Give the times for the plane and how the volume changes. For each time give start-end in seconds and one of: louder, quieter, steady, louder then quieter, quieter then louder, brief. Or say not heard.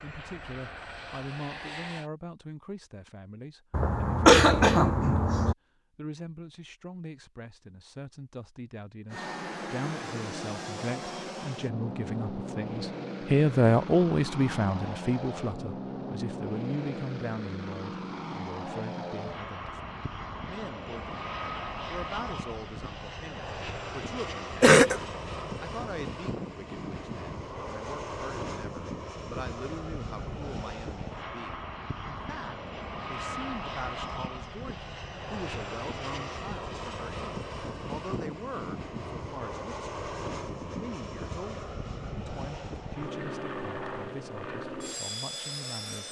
0.0-2.1 brief
9.1-46.0 steady.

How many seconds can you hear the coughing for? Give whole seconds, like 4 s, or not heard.
2 s.